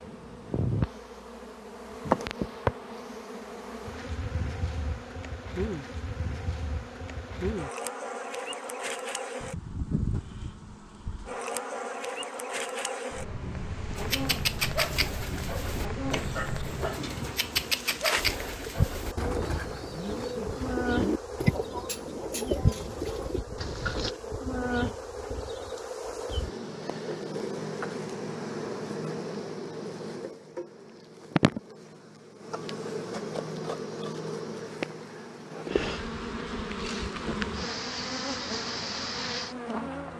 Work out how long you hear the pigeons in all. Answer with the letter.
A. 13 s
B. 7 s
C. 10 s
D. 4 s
C.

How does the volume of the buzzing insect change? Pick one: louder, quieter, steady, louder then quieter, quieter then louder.
steady.